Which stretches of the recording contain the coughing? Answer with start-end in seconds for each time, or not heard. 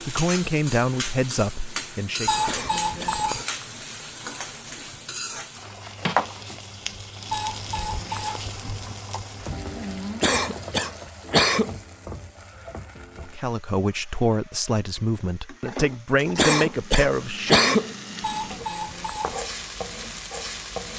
2.5-3.1, 10.2-11.8, 16.4-17.9.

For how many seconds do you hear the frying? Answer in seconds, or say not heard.
21 s.